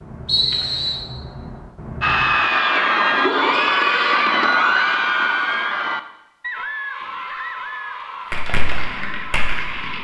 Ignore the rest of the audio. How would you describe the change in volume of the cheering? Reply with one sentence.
The loudness of the cheering goes down.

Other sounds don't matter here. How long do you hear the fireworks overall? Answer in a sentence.
You can hear the fireworks for 4 seconds altogether.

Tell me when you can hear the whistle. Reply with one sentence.
You can hear the whistle from 0.2 to 1.1 s.